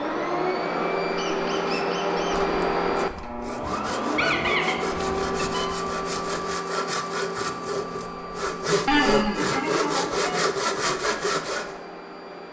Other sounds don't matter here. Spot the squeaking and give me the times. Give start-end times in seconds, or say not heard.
1.1-2.5, 4.2-5.7, 8.8-10.3.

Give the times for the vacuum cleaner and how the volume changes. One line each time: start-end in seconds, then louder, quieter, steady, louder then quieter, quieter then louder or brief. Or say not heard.
0.0-12.4 quieter.